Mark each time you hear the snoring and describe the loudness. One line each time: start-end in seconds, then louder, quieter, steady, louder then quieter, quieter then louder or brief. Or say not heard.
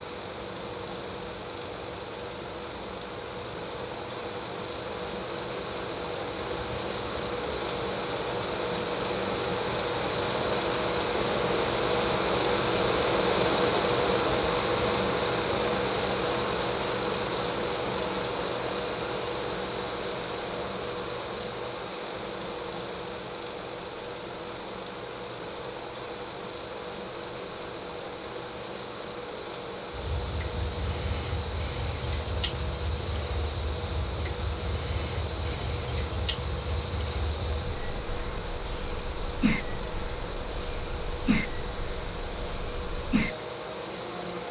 not heard.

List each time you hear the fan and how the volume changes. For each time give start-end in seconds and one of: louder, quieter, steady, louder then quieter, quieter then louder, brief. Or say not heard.
0.0-44.4 louder then quieter.